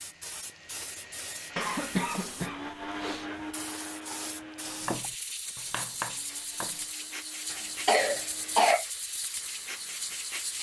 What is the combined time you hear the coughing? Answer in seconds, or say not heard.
3 s.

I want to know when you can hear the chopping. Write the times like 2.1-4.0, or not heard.
4.8-6.8.